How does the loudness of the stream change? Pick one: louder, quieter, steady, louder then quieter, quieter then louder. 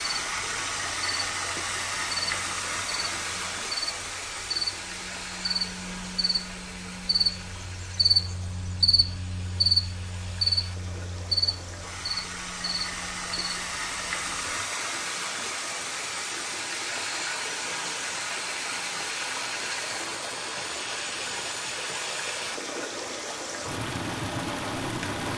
quieter then louder.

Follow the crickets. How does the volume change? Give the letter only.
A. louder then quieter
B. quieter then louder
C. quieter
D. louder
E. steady
A.